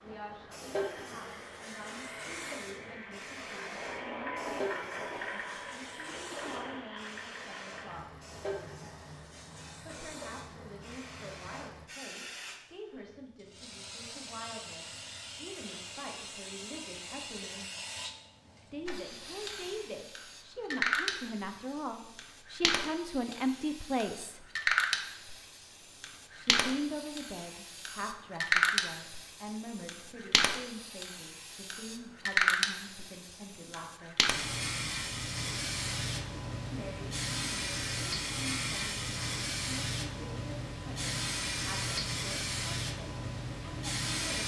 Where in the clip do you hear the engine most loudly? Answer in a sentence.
The loudest moment of the engine is at 5 seconds.